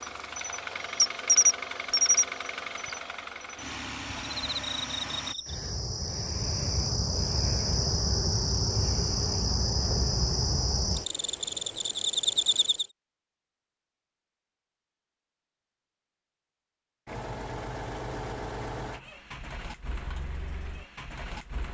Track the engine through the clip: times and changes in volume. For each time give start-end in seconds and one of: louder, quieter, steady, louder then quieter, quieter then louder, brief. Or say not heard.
0.0-5.3 steady
17.1-21.7 quieter.